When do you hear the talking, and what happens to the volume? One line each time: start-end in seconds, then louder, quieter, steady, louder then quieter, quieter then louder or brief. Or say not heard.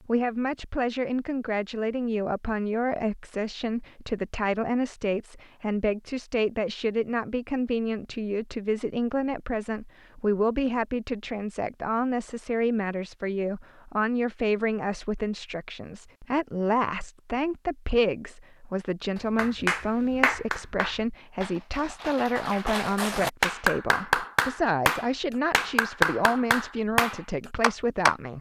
0.1-28.3 steady.